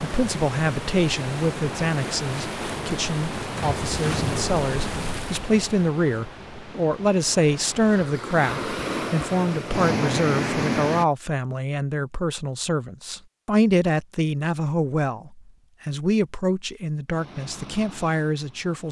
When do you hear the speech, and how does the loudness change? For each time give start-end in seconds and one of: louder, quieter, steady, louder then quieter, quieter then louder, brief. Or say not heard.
0.0-18.8 steady.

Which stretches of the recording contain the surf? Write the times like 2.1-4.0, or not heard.
0.0-11.1.